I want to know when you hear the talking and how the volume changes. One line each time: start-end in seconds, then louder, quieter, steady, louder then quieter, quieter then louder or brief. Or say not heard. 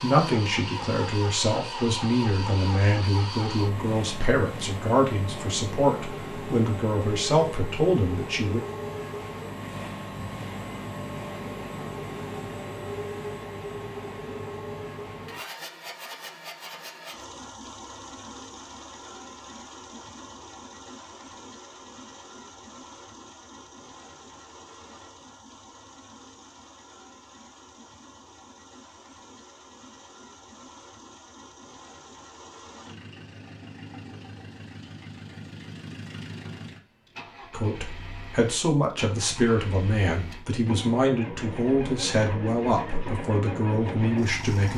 0.0-8.6 steady
37.5-44.7 steady.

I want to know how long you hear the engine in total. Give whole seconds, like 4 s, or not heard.
45 s.